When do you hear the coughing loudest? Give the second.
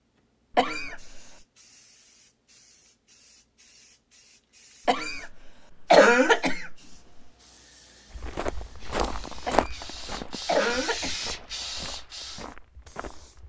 6 s.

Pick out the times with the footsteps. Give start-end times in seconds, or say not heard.
8.1-13.4.